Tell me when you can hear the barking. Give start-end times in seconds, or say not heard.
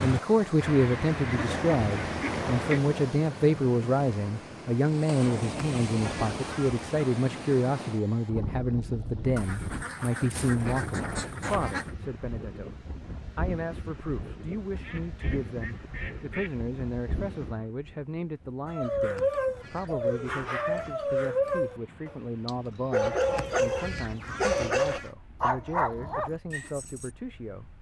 18.6-27.1.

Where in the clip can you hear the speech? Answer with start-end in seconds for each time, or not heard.
0.0-12.8, 13.3-27.6.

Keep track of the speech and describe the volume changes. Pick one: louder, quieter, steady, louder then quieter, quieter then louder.
quieter.